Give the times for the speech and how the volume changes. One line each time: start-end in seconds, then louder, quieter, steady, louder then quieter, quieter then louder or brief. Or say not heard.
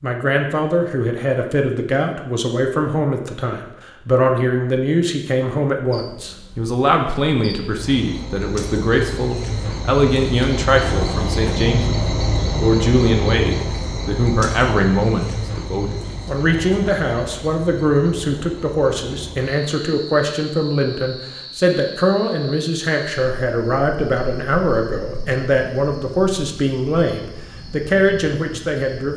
0.0-29.1 steady.